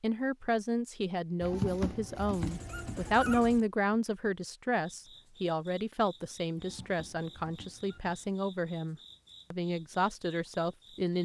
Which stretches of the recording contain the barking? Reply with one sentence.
You can hear the barking from 1.4 to 3.6 s and from 6.5 to 8.3 s.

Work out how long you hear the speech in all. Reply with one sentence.
The speech can be heard for 11 seconds in total.